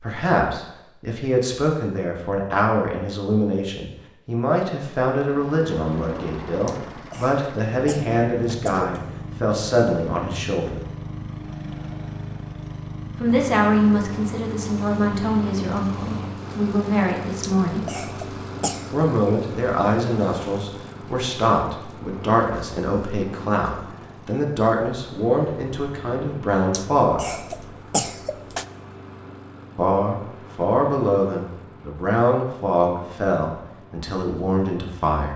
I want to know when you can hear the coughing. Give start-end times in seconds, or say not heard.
6.7-9.0, 17.4-18.9, 26.7-28.6.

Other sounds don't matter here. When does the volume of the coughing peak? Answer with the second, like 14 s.
28 s.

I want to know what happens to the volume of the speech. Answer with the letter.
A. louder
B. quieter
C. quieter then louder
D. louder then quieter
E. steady
E.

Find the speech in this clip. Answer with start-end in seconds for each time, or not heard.
0.0-10.8, 13.2-17.9, 18.9-27.2, 29.8-35.3.